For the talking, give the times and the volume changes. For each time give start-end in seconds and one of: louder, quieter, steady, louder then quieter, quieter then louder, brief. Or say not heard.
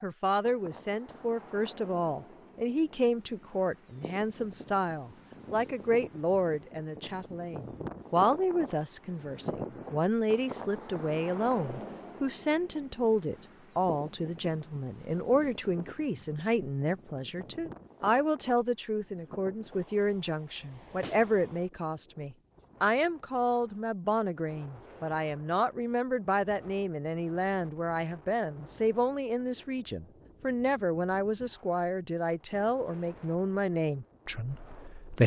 0.0-35.2 steady.